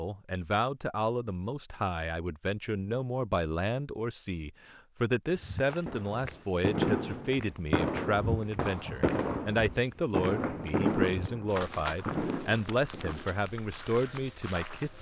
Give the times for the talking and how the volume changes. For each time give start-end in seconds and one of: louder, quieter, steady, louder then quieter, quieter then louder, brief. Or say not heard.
0.0-14.9 steady.